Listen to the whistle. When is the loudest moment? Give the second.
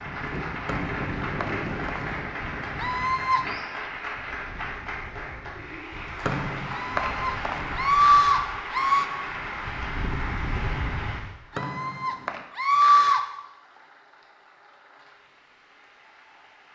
7 s.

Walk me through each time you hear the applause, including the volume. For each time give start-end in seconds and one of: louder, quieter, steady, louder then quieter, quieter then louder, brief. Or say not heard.
0.0-16.7 quieter.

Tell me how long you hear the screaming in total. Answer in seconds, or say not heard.
5 s.